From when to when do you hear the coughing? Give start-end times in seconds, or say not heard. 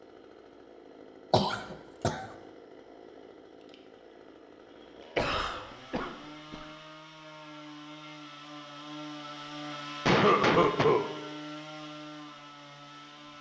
1.3-2.2, 5.2-6.7, 10.1-11.1.